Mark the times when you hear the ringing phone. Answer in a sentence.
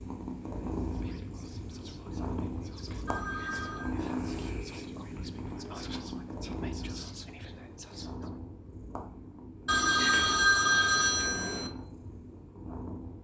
You can hear the ringing phone from 3.0 to 3.9 s and from 9.7 to 11.7 s.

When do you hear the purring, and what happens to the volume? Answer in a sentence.
The purring can be heard from 0.0 to 13.1 s, getting quieter.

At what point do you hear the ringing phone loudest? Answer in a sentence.
The volume of the ringing phone peaks at 11 seconds.